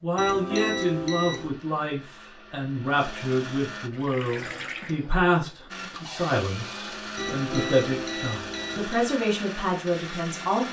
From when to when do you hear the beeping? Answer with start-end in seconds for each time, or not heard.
0.1-1.5, 7.2-9.1.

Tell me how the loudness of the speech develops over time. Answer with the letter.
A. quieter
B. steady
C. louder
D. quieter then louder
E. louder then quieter
B.